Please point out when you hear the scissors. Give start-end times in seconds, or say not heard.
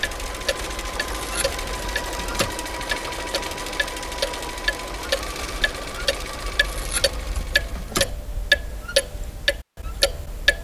1.1-2.6, 6.6-8.2.